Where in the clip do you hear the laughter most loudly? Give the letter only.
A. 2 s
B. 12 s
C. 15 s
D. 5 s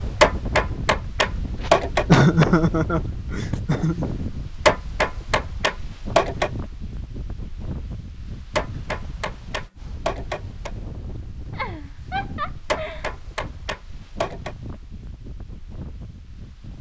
A.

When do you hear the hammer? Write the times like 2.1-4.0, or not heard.
0.2-2.0, 4.7-6.5, 8.6-10.7, 12.7-14.6.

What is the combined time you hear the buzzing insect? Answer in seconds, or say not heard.
not heard.